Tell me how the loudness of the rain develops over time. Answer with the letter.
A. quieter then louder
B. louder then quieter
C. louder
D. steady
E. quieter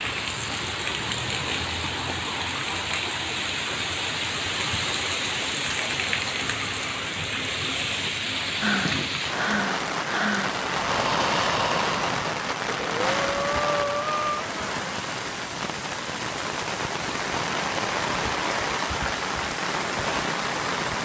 D.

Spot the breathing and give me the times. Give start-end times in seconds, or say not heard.
8.6-14.5.